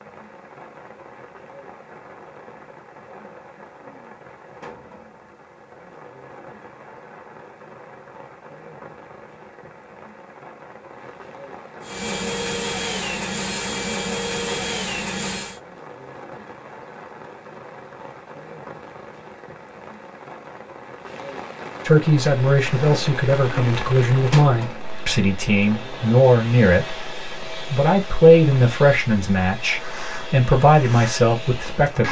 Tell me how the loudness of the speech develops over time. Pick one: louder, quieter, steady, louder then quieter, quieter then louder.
steady.